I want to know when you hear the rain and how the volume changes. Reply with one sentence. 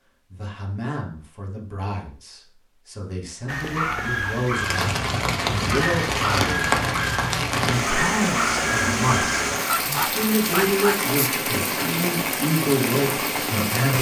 The rain can be heard from 4.5 to 13.9 s, at a steady volume.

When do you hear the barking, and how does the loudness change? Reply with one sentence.
The barking can be heard from 3.5 to 11.3 s, at a steady volume.